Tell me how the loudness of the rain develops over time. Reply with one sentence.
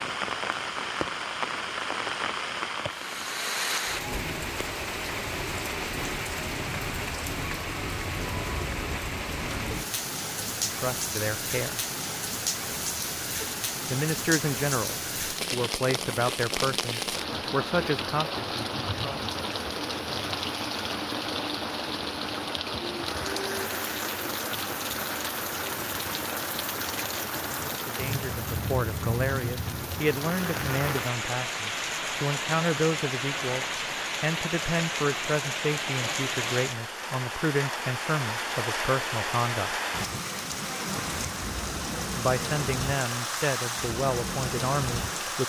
The loudness of the rain stays about the same.